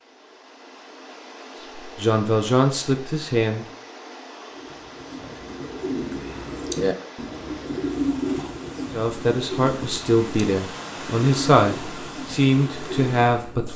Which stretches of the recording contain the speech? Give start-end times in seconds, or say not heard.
1.9-3.6, 8.9-13.7.